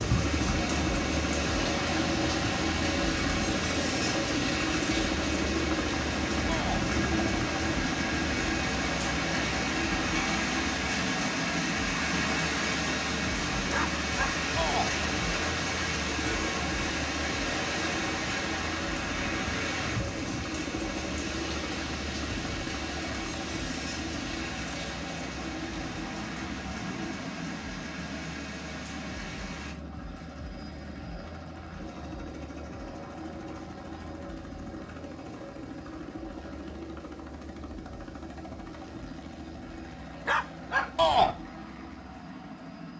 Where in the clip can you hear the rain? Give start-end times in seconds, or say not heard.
0.0-29.8.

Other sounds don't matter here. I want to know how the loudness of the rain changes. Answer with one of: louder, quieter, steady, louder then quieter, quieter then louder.
quieter.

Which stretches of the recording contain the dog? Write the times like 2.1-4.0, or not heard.
13.7-14.3, 40.2-40.9.